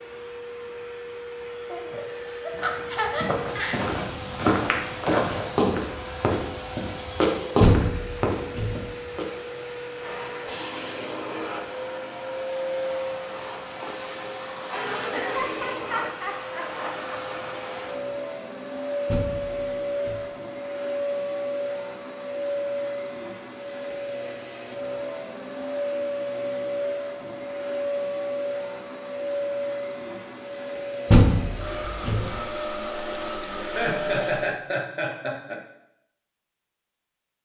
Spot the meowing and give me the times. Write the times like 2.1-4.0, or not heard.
not heard.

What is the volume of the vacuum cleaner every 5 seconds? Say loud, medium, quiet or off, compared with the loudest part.
medium, medium, loud, loud, loud, loud, loud, off.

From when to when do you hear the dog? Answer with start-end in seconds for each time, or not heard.
not heard.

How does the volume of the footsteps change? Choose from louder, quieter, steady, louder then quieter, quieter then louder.
louder then quieter.